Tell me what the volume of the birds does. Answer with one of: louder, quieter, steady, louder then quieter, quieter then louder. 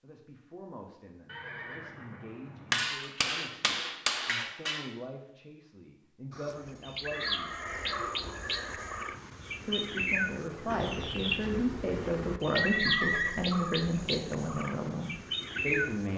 steady.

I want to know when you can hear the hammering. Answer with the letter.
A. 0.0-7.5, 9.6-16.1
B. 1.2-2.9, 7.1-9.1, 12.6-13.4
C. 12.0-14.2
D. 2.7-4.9
D.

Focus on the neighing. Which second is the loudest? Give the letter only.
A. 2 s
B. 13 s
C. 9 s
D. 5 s
B.